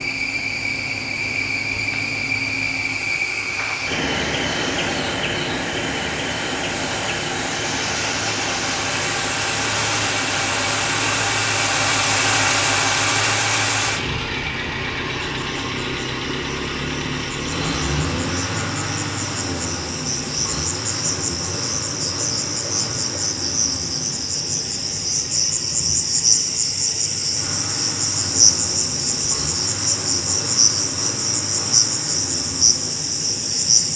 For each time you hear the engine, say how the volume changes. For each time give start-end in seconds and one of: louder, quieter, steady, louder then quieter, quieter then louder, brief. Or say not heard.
0.0-33.9 louder then quieter.